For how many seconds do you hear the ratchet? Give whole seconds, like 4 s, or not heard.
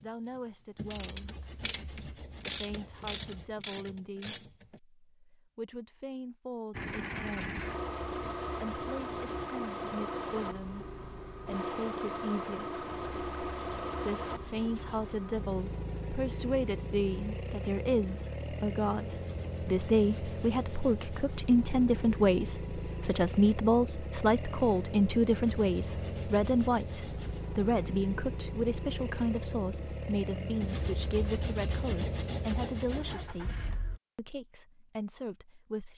5 s.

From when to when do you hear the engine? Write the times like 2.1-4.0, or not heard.
6.7-34.0.